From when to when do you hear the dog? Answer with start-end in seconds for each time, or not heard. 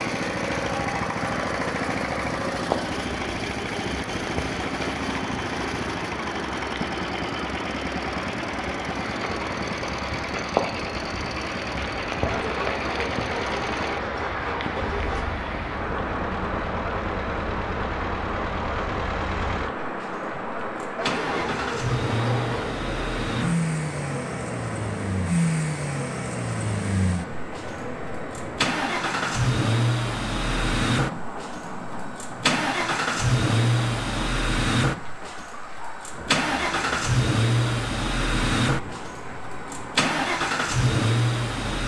12.2-15.2, 20.9-22.7.